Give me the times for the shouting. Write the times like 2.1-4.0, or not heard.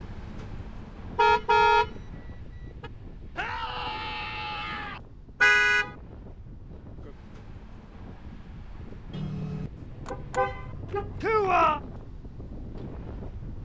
3.4-5.0, 11.2-11.8.